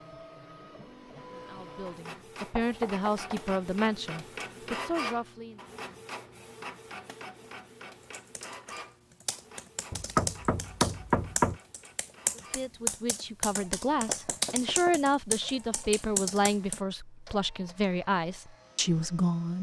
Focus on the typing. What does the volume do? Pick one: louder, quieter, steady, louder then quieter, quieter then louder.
louder.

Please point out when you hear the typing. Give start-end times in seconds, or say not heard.
8.0-16.8.